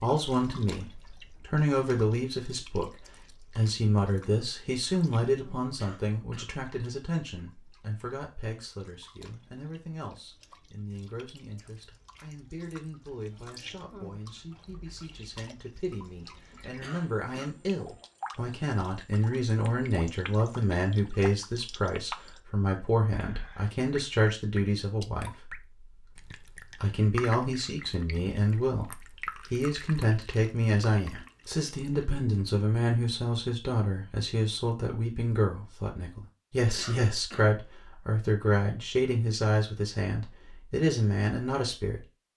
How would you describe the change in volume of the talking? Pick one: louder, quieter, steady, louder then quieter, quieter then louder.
quieter then louder.